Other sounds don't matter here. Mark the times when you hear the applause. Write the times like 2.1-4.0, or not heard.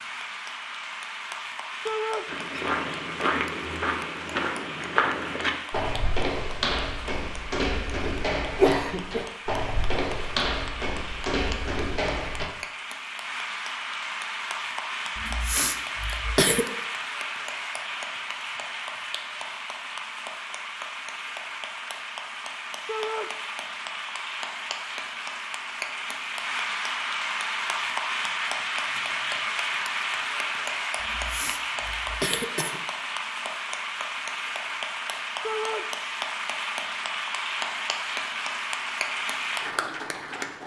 0.0-40.6.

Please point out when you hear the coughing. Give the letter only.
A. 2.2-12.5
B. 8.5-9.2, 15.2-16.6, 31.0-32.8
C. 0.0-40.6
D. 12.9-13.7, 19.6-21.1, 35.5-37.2
B.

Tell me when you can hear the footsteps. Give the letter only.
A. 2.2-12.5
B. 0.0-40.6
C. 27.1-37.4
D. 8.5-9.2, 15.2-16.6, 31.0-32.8
A.